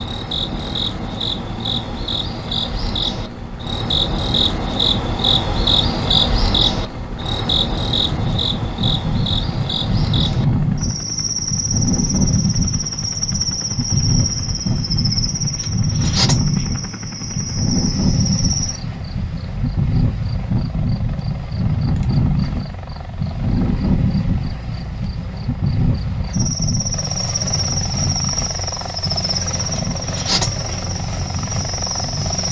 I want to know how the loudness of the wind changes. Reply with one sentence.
The loudness of the wind goes down.